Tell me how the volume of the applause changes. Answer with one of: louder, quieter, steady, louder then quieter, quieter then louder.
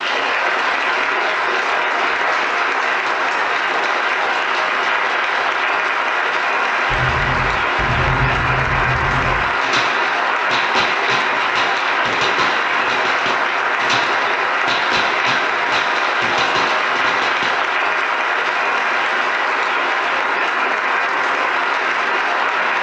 steady.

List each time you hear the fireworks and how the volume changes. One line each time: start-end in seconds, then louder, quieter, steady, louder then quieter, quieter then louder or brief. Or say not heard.
6.8-17.6 steady.